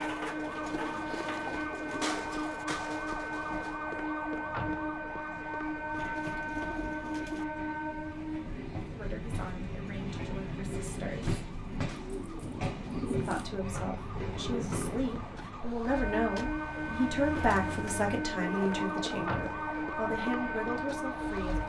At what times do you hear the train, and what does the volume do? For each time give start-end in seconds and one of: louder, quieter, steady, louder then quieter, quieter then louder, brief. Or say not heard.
0.0-21.6 steady.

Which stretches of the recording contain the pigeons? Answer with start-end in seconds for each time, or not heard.
0.8-2.5, 6.0-7.5, 11.9-13.5, 17.4-19.4.